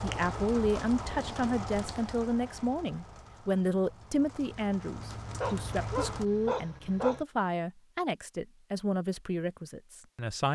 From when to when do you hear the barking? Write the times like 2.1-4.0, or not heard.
5.4-7.2.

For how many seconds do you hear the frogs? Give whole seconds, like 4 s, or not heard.
not heard.